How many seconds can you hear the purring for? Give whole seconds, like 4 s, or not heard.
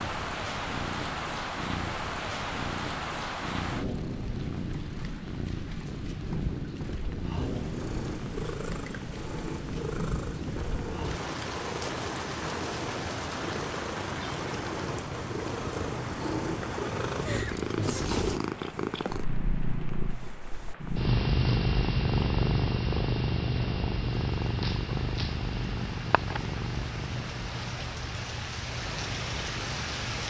30 s.